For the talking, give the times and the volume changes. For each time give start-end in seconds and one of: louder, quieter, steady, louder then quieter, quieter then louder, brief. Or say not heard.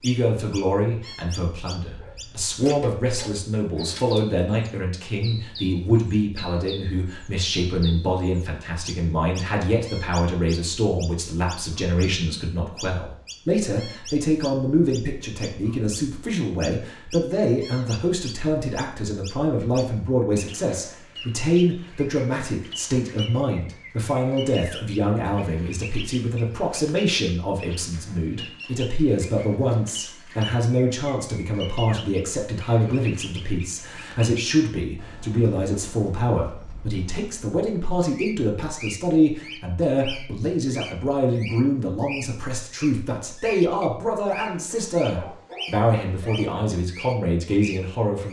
0.0-48.2 steady.